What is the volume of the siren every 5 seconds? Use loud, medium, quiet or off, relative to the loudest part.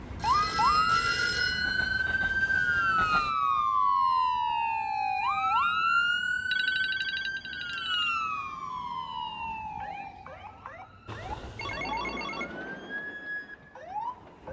loud, loud, quiet.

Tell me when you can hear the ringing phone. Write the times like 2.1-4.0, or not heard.
0.1-2.0, 6.5-8.1, 11.6-12.7.